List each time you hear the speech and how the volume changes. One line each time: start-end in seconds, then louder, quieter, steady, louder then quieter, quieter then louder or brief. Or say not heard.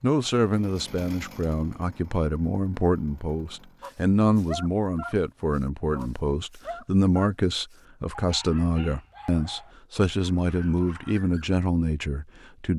0.0-12.7 steady.